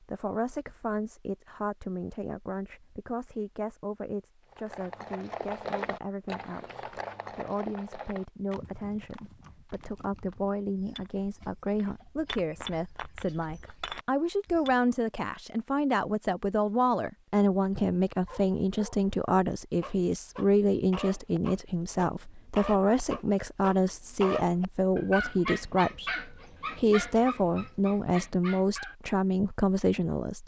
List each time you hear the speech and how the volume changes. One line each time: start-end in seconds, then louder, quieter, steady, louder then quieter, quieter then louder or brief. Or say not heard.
0.1-30.4 louder.